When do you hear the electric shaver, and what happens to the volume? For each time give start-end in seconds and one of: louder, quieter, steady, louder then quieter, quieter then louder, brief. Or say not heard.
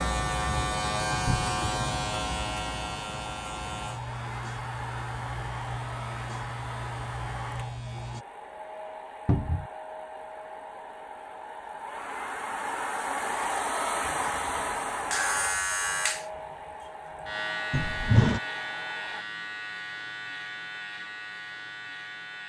0.0-8.2 quieter
14.0-22.4 quieter.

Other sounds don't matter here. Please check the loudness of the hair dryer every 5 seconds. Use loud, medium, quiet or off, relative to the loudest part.
medium, medium, loud, medium, off.